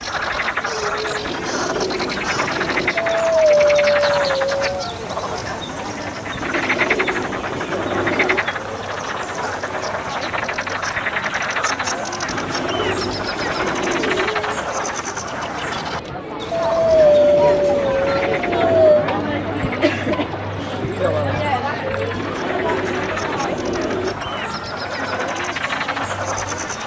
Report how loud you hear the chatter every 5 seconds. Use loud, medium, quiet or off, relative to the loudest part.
medium, medium, medium, loud, loud, medium.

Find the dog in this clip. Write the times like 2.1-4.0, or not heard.
3.0-5.0, 16.5-19.1.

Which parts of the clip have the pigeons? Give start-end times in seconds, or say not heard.
1.2-3.0, 6.4-8.4, 12.2-14.3, 16.9-18.9, 22.1-24.1.